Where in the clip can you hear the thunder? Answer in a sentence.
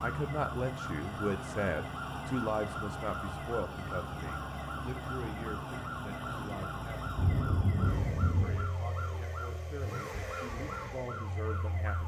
You can hear the thunder from 7.2 to 8.7 s.